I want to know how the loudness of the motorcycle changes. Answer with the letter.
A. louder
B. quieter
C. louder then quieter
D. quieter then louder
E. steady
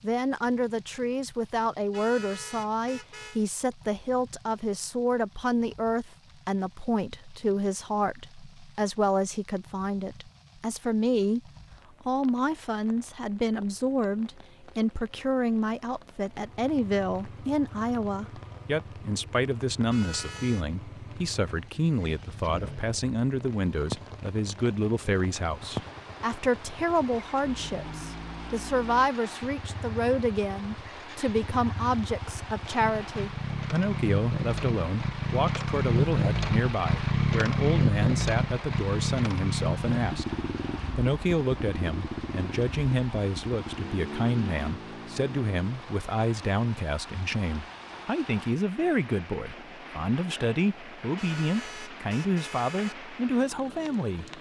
C.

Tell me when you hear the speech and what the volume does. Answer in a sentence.
You can hear the speech from 0.0 to 40.4 s, at a steady volume; and from 41.0 to 54.3 s, at a steady volume.